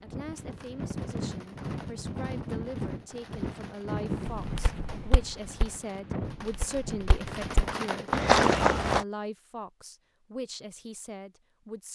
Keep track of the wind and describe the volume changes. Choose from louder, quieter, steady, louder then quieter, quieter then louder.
quieter then louder.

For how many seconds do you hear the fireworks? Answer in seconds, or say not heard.
9 s.